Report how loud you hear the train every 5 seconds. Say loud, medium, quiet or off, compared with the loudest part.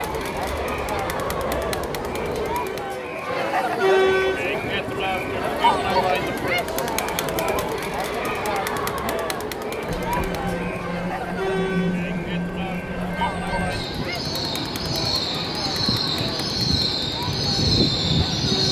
medium, medium, medium, loud.